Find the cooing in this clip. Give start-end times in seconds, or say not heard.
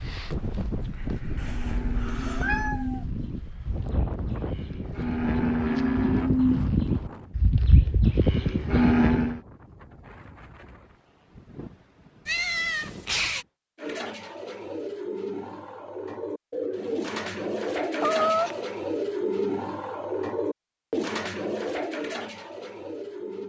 13.8-23.4.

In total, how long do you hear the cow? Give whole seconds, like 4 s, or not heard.
8 s.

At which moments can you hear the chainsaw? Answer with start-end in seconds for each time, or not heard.
not heard.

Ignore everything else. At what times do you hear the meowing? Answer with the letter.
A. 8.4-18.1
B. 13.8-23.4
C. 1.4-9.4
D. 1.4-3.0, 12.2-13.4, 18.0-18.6
D.